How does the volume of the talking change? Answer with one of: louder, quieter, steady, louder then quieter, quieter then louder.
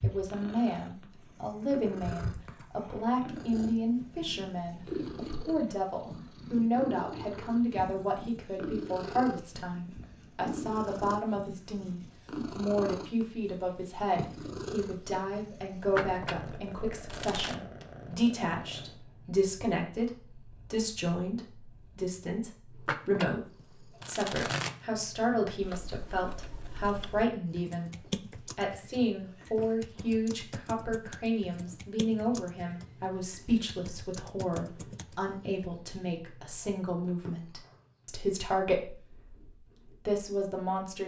steady.